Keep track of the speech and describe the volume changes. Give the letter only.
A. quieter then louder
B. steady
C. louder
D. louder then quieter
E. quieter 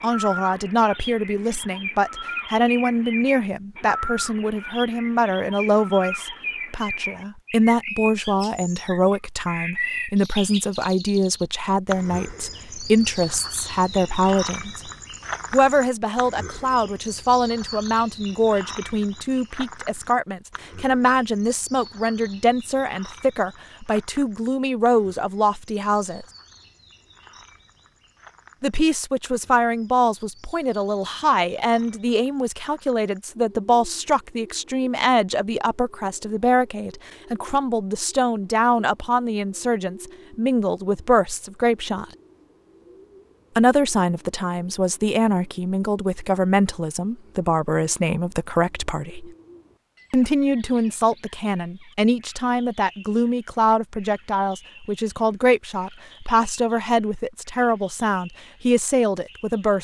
B.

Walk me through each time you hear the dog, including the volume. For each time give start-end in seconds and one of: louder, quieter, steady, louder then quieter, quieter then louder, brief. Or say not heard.
not heard.